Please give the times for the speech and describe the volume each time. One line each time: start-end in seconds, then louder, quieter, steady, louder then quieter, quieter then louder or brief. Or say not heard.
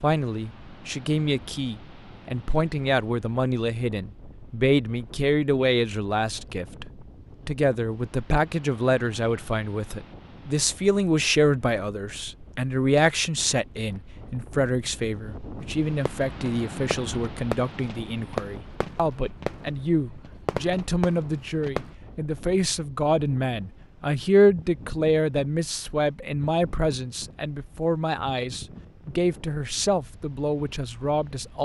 0.0-31.6 steady.